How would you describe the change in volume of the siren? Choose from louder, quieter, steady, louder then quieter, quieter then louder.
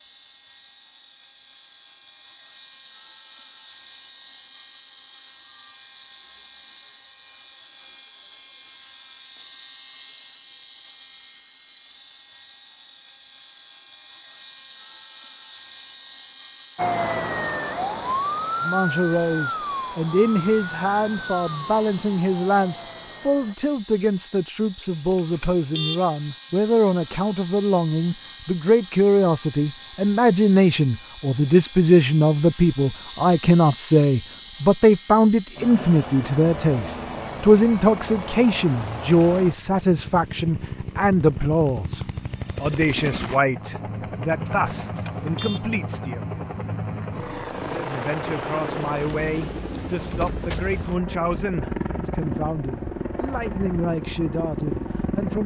quieter.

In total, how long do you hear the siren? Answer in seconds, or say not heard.
7 s.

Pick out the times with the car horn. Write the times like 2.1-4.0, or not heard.
24.8-26.1, 44.5-45.6.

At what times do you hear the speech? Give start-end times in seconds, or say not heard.
18.6-46.2, 47.7-55.4.